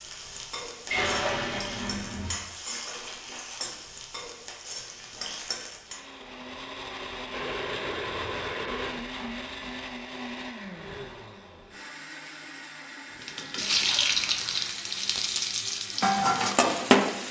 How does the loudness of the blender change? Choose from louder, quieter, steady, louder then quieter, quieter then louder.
quieter.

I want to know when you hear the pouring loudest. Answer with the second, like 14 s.
1 s.